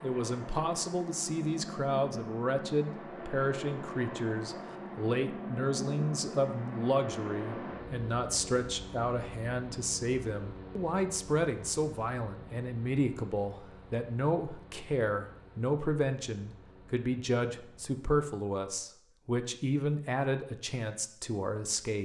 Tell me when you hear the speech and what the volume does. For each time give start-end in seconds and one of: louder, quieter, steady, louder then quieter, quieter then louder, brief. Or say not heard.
0.0-22.0 steady.